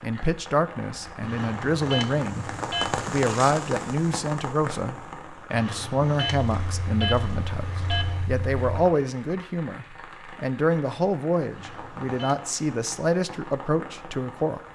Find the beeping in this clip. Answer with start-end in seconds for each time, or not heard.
1.2-3.0, 5.5-8.2, 11.5-12.4.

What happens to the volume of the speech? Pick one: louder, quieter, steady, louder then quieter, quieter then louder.
steady.